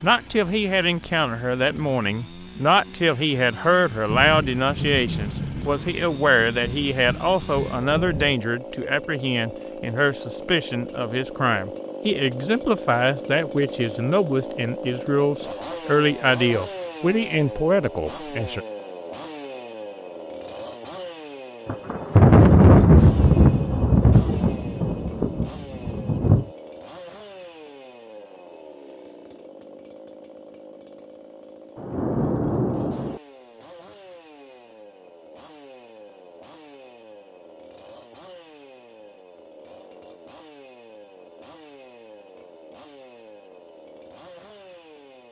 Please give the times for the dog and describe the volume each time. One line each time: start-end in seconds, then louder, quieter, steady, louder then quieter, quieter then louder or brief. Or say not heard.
not heard.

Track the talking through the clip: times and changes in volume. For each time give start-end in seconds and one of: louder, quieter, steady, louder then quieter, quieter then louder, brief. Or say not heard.
0.0-18.6 steady.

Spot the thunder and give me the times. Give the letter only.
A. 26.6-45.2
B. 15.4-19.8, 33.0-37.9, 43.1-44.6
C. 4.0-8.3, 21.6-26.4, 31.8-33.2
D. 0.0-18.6
C.